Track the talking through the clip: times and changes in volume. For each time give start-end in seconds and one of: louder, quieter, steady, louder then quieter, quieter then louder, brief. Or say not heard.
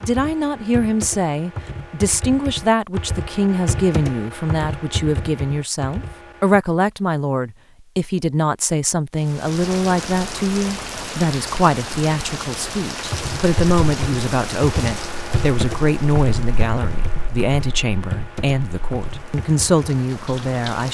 0.0-20.9 steady.